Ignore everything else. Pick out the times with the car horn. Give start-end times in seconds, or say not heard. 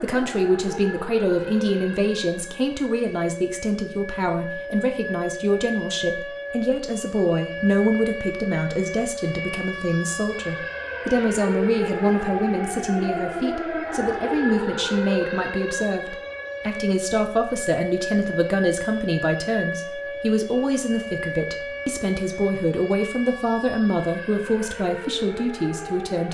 not heard.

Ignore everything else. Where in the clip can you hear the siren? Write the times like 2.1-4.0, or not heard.
0.0-26.2.